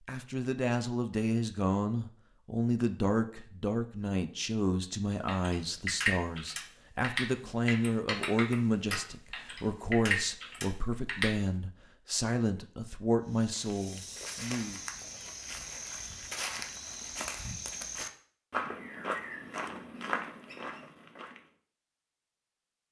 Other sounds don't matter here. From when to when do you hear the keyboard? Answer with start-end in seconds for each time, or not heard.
5.2-11.3.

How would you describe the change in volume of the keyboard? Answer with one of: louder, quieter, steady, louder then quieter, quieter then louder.
quieter then louder.